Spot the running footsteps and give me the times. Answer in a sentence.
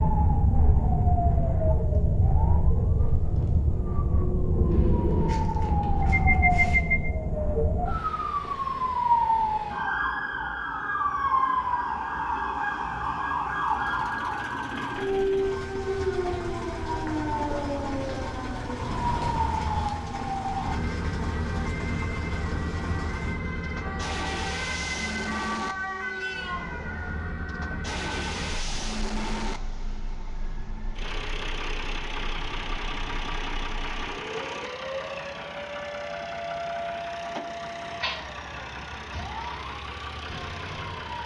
The running footsteps can't be heard in this clip.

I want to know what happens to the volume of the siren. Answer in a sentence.
The volume of the siren goes down.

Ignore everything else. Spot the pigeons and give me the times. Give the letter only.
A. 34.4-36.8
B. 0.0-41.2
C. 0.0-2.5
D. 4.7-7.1
D.